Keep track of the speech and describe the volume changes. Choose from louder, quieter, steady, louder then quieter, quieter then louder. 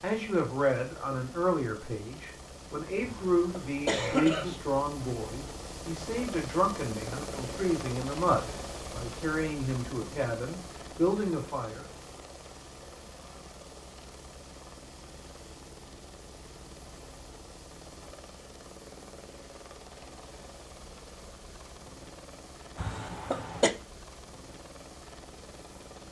steady.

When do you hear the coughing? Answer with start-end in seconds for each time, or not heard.
3.0-4.6, 22.8-23.7.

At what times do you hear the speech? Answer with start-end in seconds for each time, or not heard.
0.0-11.8.